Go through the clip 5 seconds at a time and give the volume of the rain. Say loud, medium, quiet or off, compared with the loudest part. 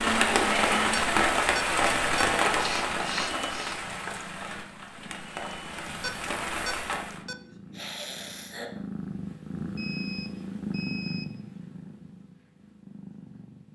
loud, medium, off.